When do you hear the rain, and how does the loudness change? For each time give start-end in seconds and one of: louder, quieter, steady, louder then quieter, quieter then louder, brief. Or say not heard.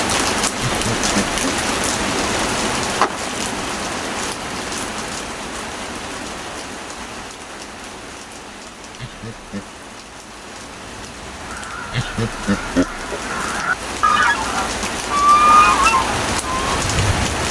0.0-17.4 quieter then louder.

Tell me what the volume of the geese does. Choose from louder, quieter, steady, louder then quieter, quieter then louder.
louder.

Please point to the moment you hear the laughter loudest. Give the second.
13 s.